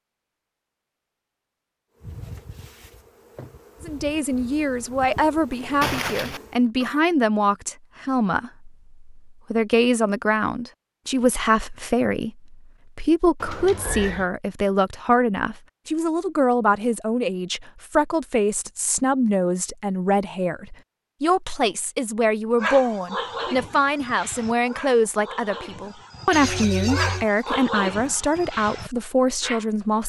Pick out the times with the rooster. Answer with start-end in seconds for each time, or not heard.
not heard.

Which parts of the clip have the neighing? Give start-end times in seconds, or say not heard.
5.8-7.0, 13.4-14.3, 26.3-27.2.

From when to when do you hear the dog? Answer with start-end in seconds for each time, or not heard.
22.6-30.0.